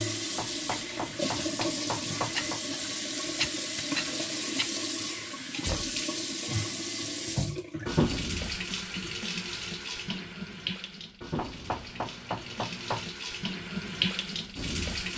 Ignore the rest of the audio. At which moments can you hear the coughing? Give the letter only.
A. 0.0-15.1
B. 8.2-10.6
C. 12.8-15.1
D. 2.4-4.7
D.